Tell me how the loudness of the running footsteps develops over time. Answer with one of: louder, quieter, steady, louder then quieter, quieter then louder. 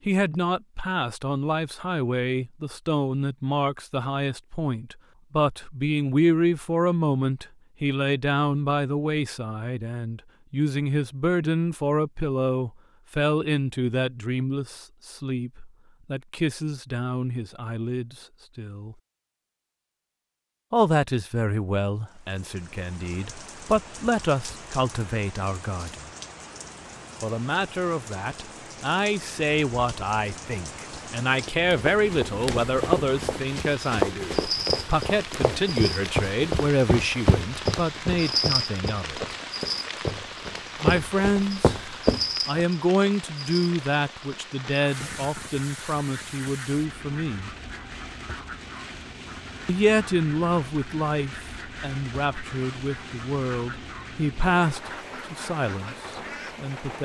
quieter then louder.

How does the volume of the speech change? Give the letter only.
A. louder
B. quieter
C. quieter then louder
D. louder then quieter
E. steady
E.